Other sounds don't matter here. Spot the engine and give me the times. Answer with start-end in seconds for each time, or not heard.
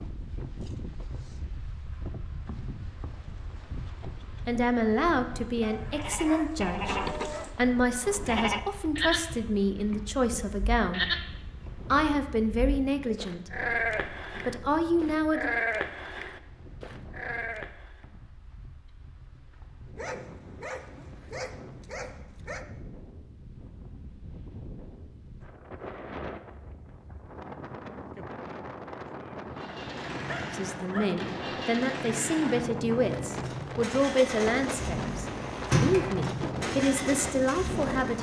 29.4-38.1.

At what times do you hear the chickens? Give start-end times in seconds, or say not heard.
not heard.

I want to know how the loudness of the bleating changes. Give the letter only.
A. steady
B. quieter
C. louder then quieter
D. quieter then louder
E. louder
A.